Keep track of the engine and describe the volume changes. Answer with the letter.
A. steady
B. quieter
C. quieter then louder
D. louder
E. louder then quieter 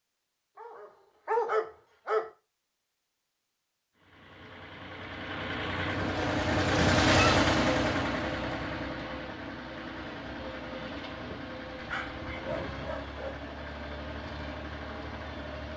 E.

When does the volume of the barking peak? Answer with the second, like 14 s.
1 s.